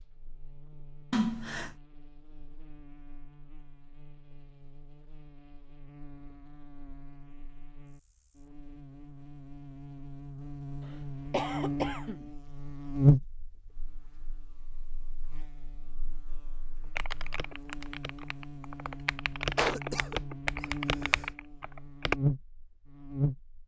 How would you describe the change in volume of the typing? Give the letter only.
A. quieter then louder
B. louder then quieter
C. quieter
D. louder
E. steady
D.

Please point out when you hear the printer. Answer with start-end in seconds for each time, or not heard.
not heard.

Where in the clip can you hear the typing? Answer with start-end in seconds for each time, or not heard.
16.9-22.2.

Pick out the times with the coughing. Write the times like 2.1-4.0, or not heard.
1.1-1.8, 11.3-12.3, 19.6-21.2.